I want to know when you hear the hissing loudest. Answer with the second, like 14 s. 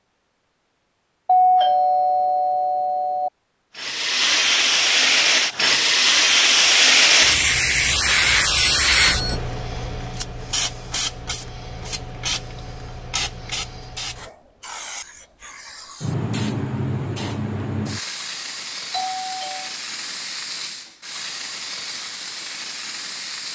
7 s.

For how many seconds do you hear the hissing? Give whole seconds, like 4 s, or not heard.
20 s.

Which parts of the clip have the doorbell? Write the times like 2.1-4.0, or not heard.
1.2-3.3, 8.6-9.3, 18.9-19.7.